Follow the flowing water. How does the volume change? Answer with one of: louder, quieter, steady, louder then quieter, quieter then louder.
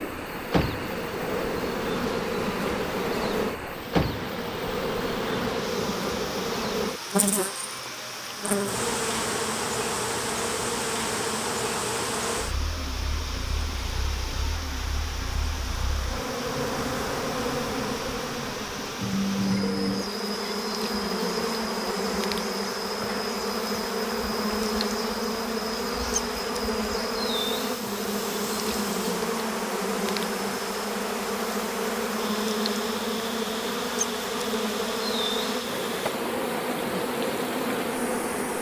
steady.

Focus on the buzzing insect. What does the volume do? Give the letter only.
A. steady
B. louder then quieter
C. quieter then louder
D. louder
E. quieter
A.